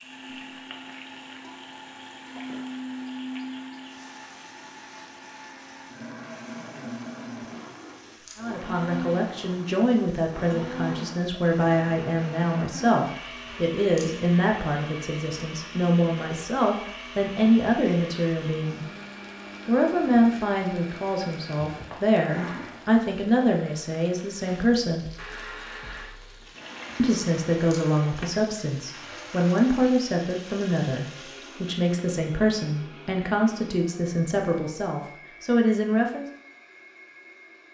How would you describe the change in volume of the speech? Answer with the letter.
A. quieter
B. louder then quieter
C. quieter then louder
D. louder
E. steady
E.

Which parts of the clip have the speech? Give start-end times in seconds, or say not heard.
8.3-18.9, 19.6-25.1, 26.9-36.2.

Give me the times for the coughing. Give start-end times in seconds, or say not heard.
not heard.